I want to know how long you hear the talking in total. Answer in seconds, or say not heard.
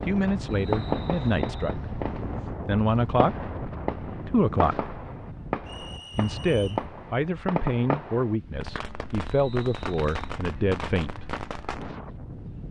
8 s.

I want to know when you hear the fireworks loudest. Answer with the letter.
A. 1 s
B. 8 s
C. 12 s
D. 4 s
A.